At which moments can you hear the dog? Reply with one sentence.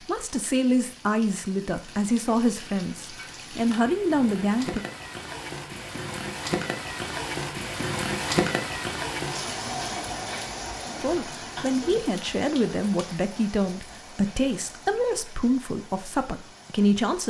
The dog can't be heard in this clip.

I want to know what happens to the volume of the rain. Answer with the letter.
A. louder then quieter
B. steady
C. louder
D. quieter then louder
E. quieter
A.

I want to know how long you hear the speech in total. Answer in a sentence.
The speech can be heard for 11 seconds in total.